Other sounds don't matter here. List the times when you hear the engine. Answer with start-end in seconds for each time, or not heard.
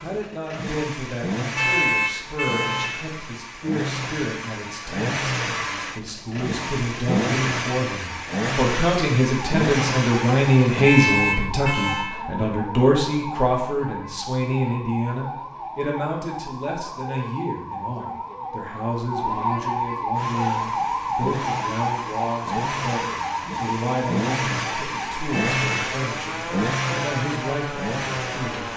0.0-10.9, 20.1-28.7.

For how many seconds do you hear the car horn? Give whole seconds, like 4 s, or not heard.
3 s.